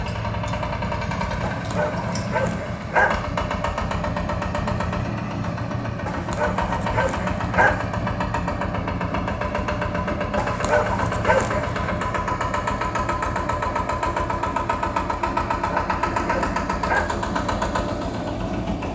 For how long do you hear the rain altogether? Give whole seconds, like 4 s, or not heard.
not heard.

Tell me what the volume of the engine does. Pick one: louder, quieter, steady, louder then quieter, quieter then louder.
steady.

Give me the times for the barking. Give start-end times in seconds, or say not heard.
1.4-3.2, 6.0-7.8, 10.3-11.9, 15.6-17.1.